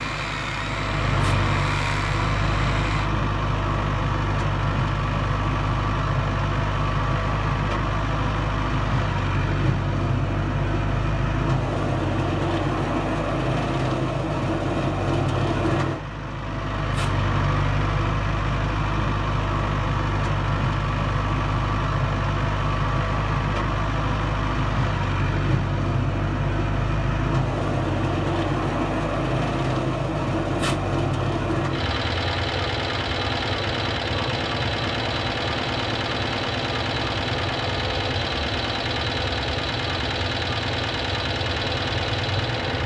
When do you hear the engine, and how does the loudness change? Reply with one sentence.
The engine can be heard from 0.0 to 42.8 s, at a steady volume.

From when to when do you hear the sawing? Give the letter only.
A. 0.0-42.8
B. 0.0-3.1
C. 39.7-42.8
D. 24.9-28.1
B.